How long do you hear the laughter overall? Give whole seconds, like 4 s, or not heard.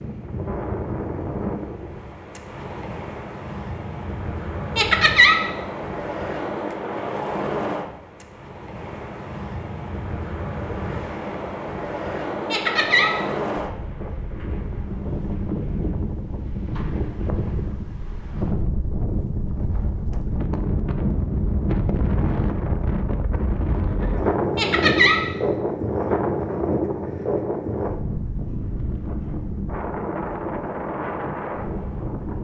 2 s.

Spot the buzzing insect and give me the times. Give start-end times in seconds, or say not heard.
not heard.